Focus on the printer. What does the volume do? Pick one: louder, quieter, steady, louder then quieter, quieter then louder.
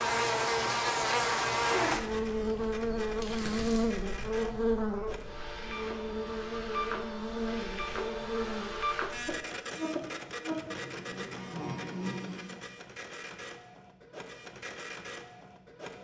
louder then quieter.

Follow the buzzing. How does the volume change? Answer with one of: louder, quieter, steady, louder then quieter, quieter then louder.
quieter.